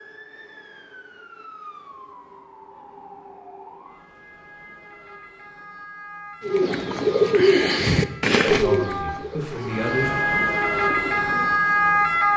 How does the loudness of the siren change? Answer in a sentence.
The loudness of the siren goes up.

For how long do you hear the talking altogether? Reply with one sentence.
You can hear the talking for 2 seconds altogether.